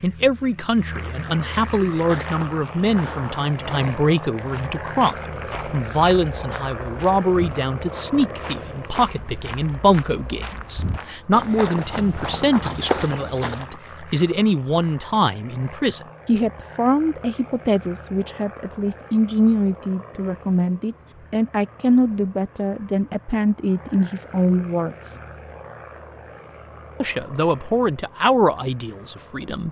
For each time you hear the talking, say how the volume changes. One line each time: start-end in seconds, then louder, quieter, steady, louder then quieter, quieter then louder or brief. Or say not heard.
0.0-25.2 steady
27.0-29.6 brief.